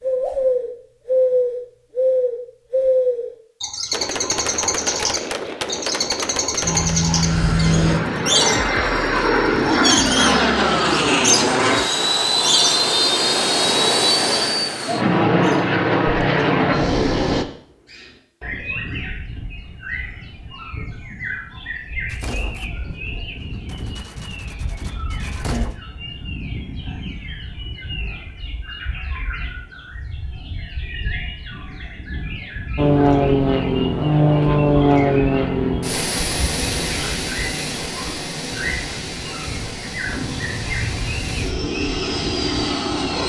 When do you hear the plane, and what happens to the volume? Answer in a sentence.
The plane can be heard from 6.6 to 17.4 s, at a steady volume; and from 32.8 to 43.2 s, getting quieter then louder.